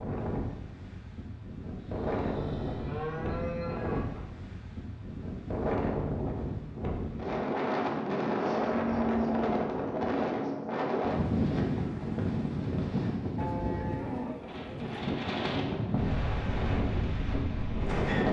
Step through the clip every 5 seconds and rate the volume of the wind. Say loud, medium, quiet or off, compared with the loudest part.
medium, loud, loud, loud.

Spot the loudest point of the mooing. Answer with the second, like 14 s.
9 s.